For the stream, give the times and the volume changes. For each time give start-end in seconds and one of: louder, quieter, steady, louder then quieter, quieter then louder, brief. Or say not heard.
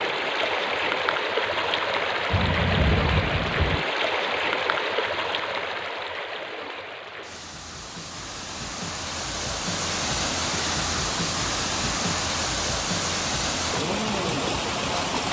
0.0-15.2 quieter then louder.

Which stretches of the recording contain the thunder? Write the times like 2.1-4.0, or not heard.
2.3-3.9.